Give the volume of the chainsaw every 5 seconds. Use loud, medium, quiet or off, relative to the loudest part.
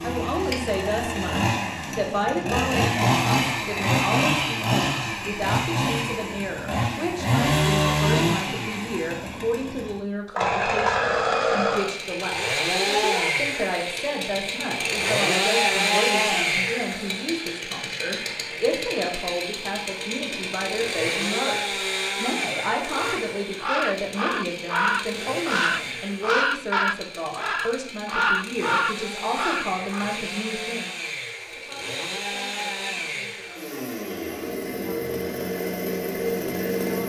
loud, loud, loud, loud, medium, medium, medium, loud.